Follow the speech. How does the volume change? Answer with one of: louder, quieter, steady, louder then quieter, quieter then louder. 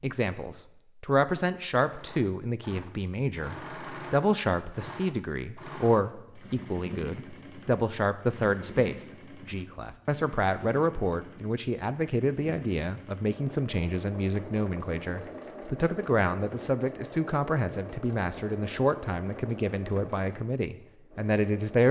steady.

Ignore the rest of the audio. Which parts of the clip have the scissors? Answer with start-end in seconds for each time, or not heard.
not heard.